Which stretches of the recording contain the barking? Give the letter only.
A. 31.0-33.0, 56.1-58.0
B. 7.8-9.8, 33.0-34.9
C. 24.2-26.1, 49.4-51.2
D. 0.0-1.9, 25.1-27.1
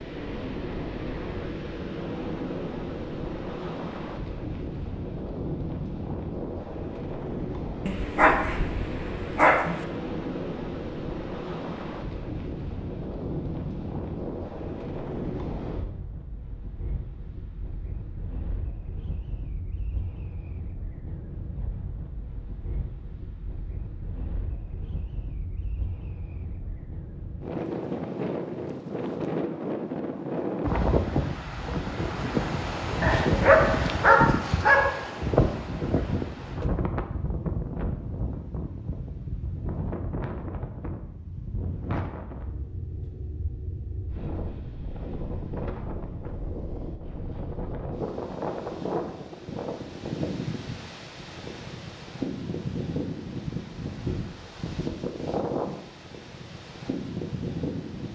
B.